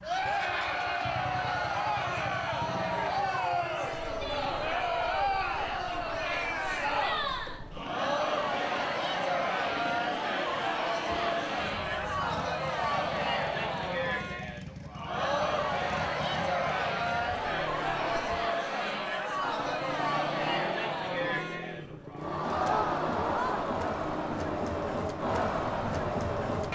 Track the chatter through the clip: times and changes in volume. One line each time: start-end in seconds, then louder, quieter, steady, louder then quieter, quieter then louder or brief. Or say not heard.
0.0-26.7 steady.